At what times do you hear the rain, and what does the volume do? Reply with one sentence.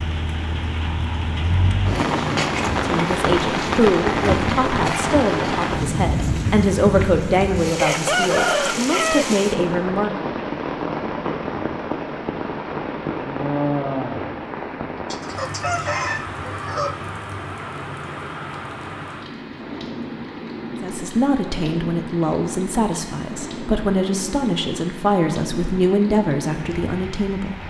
The rain can be heard from 0.0 to 27.6 s, getting quieter.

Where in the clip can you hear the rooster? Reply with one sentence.
You can hear the rooster from 7.8 to 9.3 s and from 15.1 to 17.0 s.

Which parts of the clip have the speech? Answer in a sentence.
The speech can be heard from 2.9 to 10.2 s and from 20.8 to 27.6 s.